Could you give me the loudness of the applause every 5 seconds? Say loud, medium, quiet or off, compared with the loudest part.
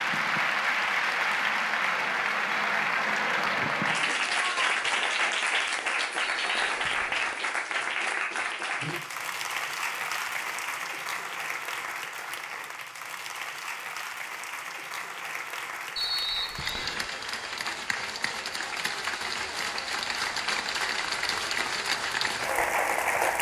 loud, loud, medium, medium, loud.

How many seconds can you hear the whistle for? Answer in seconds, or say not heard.
2 s.